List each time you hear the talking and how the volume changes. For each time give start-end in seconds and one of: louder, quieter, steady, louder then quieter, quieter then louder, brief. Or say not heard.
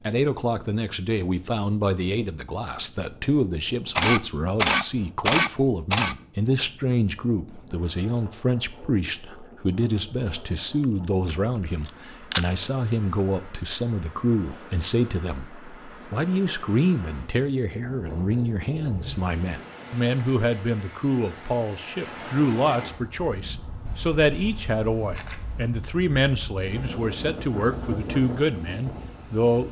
0.1-29.6 steady.